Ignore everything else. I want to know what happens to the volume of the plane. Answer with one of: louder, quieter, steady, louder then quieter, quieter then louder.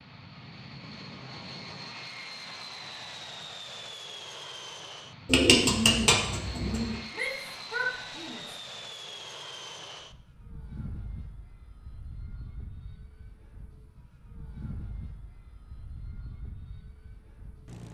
quieter.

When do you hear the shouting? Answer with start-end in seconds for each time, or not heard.
7.1-8.6.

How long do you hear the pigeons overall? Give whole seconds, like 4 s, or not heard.
2 s.